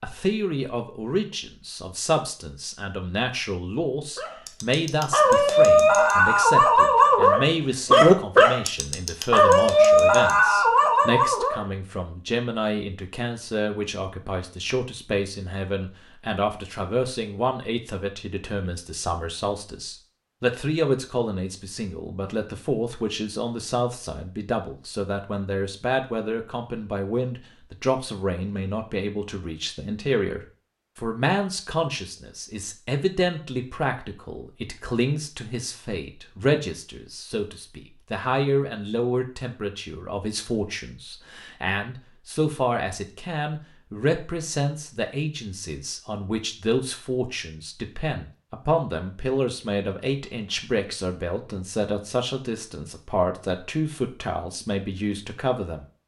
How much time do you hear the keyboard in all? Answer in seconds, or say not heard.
not heard.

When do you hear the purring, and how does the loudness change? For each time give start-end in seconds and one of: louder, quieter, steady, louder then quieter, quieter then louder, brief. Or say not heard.
not heard.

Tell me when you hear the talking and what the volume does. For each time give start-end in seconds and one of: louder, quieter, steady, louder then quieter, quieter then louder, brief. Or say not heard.
0.0-55.9 steady.